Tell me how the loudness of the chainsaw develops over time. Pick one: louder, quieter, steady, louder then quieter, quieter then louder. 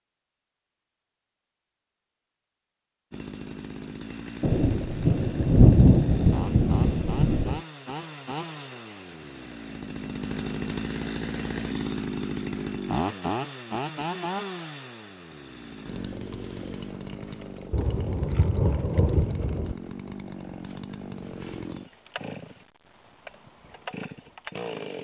louder then quieter.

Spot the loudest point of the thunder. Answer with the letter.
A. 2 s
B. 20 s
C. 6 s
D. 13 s
C.